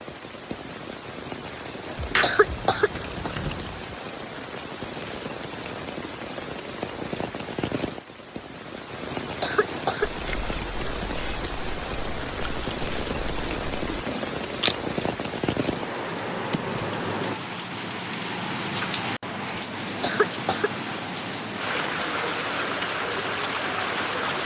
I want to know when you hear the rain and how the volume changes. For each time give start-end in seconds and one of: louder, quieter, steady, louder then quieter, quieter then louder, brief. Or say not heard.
0.0-24.4 louder.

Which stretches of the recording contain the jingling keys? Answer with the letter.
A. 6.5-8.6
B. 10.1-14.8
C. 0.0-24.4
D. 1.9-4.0
D.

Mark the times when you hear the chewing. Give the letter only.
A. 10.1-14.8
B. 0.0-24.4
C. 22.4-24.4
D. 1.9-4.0
A.